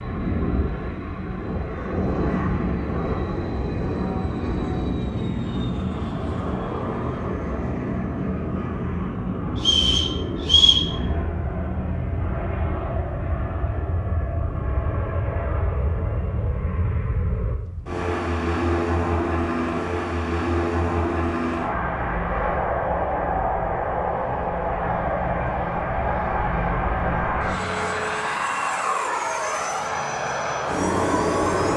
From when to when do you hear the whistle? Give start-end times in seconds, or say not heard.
9.6-10.9.